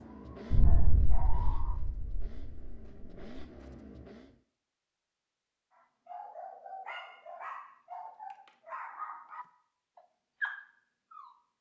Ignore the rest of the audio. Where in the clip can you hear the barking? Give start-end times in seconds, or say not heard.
0.0-1.8, 5.8-11.4.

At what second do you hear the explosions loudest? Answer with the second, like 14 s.
1 s.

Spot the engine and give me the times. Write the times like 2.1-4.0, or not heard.
0.0-4.4.